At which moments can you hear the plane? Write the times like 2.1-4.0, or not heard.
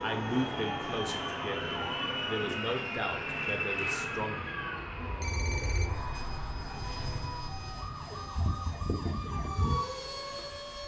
0.0-10.8.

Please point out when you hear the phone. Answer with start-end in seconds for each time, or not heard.
5.0-6.3.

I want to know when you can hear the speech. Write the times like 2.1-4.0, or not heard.
0.0-4.5.